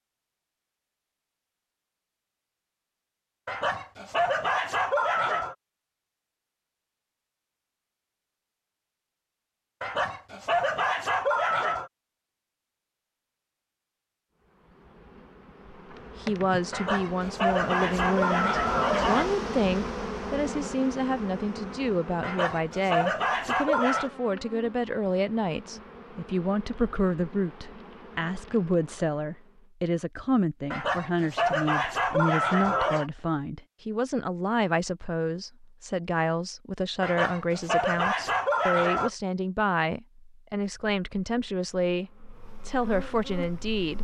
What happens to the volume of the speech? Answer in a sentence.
The volume of the speech stays about the same.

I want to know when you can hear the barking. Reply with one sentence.
The barking can be heard from 3.5 to 5.5 s, from 9.8 to 11.9 s, from 16.7 to 19.4 s, from 22.2 to 24.1 s, from 30.7 to 33.1 s and from 37.0 to 39.1 s.